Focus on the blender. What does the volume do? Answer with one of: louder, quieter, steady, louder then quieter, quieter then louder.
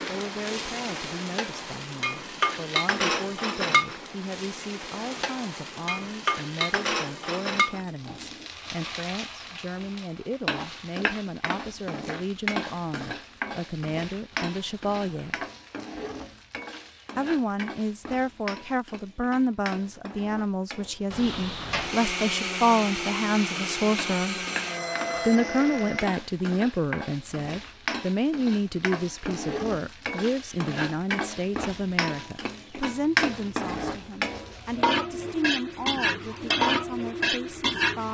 steady.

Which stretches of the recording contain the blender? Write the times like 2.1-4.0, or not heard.
21.8-26.2.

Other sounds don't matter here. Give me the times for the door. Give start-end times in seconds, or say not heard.
14.3-15.4, 21.1-22.0.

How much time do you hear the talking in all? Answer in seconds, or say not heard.
35 s.